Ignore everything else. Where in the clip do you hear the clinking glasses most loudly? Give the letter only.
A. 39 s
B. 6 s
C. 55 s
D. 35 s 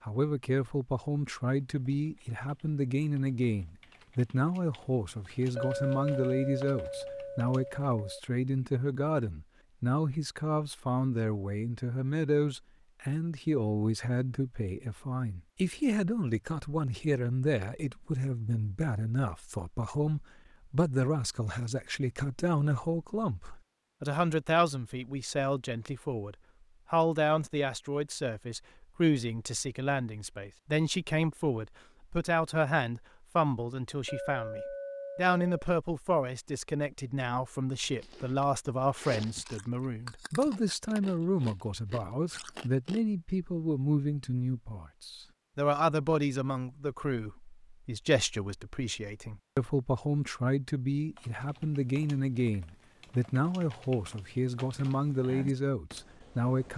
B.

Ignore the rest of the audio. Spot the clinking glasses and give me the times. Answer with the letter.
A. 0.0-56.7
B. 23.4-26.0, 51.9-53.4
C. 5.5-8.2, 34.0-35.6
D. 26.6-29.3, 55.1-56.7
C.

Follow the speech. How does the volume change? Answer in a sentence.
The volume of the speech stays about the same.